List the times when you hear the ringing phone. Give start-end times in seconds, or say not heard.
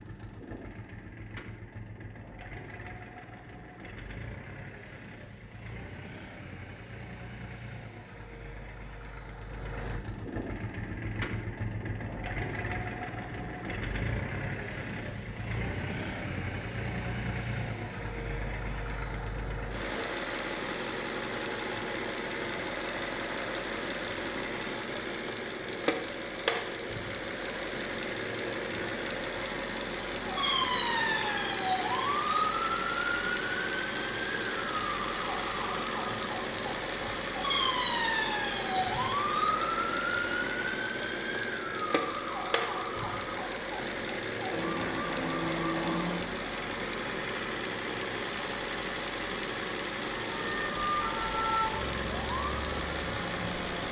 not heard.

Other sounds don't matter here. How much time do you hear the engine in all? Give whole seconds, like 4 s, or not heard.
54 s.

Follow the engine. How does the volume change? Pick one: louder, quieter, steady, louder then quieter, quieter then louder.
louder.